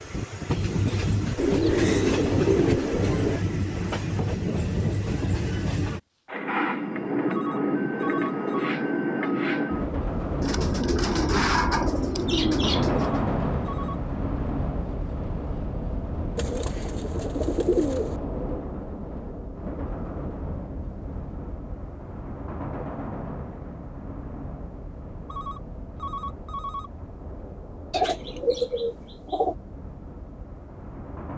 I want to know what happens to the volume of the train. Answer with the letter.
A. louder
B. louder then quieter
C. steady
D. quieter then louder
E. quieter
E.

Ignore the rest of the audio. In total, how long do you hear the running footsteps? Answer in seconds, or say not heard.
not heard.